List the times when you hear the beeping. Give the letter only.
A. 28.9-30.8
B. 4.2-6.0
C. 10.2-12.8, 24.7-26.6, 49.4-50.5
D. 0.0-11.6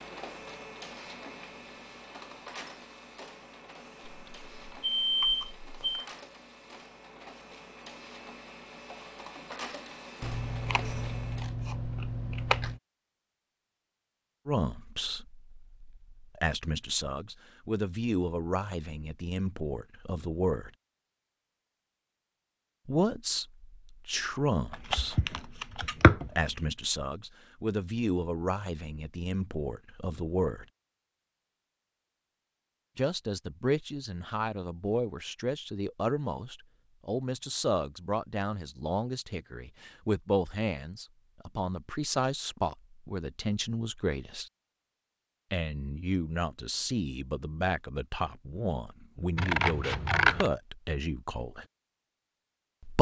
B.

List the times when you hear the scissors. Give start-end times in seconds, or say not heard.
10.2-12.8, 24.7-26.6, 49.4-50.5.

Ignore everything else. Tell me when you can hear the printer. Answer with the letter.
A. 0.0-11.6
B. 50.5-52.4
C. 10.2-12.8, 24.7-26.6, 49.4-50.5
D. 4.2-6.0
A.